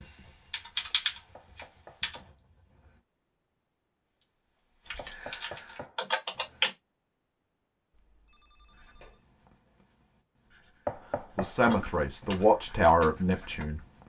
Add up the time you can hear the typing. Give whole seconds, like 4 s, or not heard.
7 s.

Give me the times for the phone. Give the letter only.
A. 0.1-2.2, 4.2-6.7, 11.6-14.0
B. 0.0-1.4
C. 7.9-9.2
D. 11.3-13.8
C.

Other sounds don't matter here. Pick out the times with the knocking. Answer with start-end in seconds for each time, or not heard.
1.4-3.0, 5.0-6.7, 10.8-12.5.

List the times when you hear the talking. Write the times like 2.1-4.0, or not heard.
11.3-13.8.